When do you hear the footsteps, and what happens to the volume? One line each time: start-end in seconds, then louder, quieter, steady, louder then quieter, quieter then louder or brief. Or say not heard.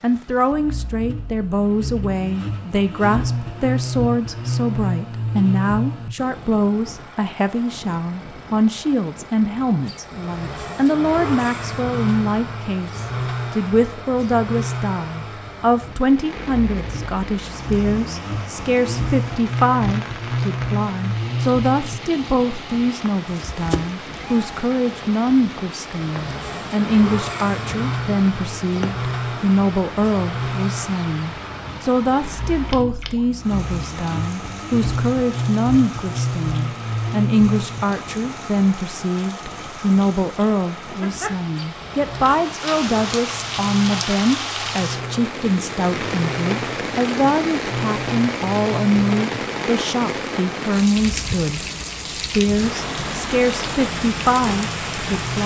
not heard.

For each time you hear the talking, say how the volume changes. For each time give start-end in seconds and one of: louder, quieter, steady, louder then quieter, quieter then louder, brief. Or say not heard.
0.0-55.4 steady.